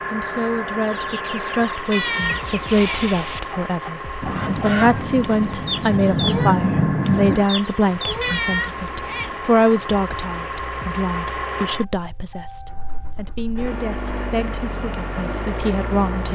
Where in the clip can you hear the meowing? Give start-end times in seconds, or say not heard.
1.9-3.1, 8.2-9.3.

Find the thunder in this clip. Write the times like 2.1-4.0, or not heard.
4.2-7.5.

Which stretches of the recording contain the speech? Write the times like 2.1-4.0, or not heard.
0.1-16.3.